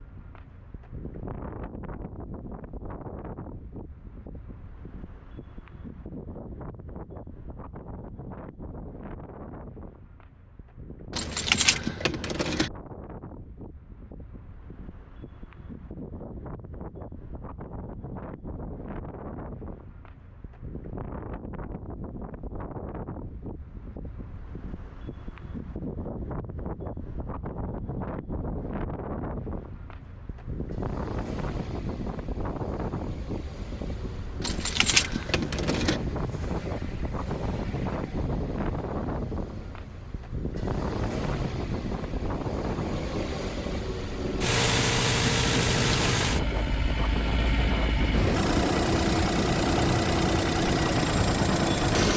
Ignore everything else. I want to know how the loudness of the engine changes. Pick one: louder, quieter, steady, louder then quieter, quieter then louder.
louder.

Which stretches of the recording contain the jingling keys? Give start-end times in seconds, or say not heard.
11.1-12.7, 34.4-36.0.